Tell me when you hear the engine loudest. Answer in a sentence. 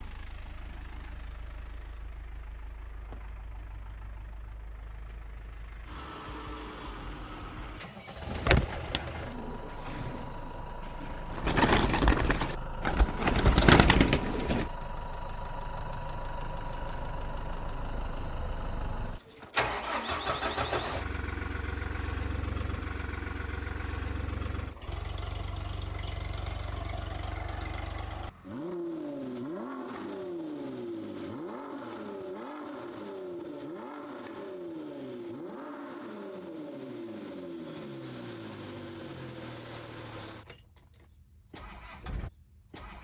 The loudest moment of the engine is at 20 seconds.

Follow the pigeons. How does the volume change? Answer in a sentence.
The volume of the pigeons goes up.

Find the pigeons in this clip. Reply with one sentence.
You can hear the pigeons from 8.2 to 14.7 s.